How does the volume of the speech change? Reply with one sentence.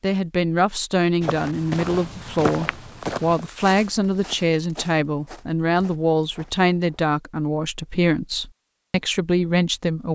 The loudness of the speech stays about the same.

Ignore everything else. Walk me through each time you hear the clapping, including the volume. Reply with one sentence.
You can't hear the clapping here.